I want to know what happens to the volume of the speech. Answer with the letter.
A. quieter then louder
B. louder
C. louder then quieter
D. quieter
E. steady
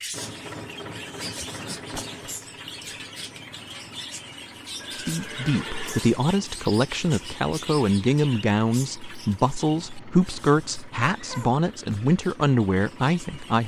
E.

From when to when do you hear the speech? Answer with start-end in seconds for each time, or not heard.
5.0-13.6.